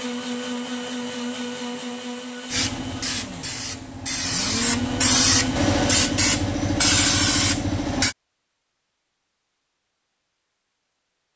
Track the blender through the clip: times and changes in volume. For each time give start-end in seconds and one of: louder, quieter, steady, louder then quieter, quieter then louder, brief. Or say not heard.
0.0-6.3 quieter then louder.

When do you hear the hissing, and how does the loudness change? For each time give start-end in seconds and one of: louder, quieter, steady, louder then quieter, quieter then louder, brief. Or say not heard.
2.5-8.2 louder.